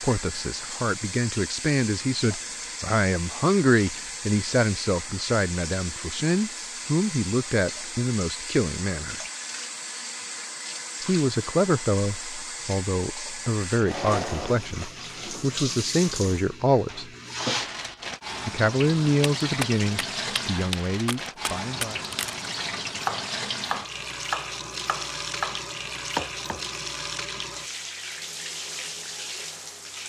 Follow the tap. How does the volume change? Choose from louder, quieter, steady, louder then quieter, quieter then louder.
steady.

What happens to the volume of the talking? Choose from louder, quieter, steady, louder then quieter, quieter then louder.
steady.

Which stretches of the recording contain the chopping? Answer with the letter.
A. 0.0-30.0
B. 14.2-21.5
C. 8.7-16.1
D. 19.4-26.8
D.